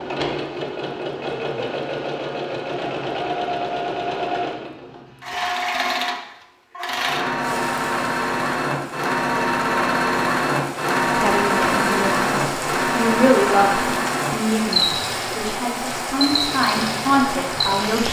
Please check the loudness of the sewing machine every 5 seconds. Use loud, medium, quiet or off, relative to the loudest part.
medium, loud, loud, medium.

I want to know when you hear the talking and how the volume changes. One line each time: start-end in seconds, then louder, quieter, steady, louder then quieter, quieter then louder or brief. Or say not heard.
11.2-12.2 brief
12.9-18.0 quieter then louder.